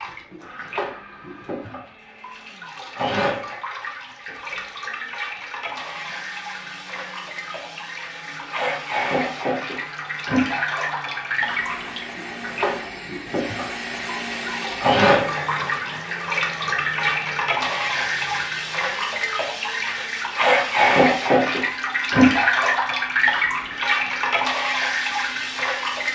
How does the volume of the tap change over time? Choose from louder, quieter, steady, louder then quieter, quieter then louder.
louder.